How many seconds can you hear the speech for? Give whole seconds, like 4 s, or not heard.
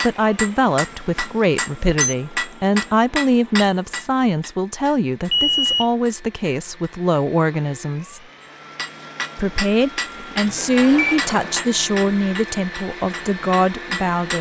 13 s.